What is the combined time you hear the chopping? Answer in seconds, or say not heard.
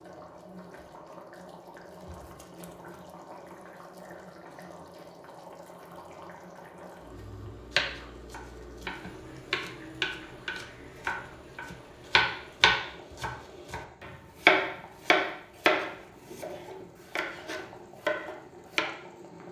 12 s.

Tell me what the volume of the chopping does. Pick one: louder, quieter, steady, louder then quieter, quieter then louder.
louder then quieter.